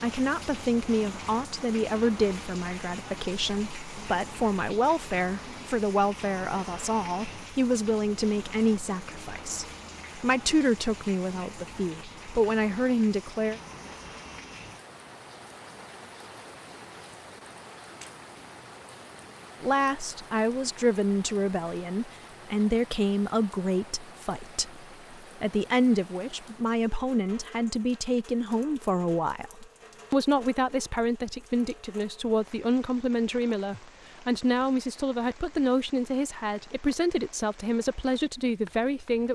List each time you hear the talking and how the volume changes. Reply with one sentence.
You can hear the talking from 0.0 to 13.6 s, at a steady volume; and from 19.6 to 39.2 s, at a steady volume.